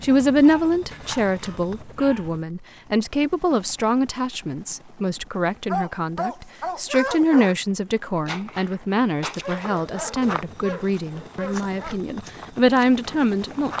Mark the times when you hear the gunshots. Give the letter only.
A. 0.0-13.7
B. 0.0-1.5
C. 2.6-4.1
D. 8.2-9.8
D.